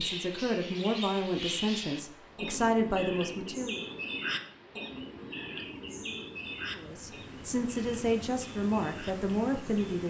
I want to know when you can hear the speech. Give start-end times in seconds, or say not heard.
0.0-3.9, 6.8-10.0.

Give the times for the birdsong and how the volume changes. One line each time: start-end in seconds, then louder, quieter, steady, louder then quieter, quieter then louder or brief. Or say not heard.
0.0-10.0 quieter.